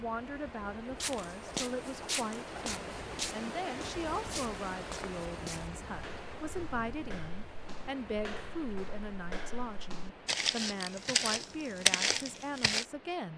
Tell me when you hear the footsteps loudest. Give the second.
12 s.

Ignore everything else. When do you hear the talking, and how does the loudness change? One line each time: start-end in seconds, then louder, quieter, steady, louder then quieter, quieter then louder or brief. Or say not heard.
0.0-13.3 steady.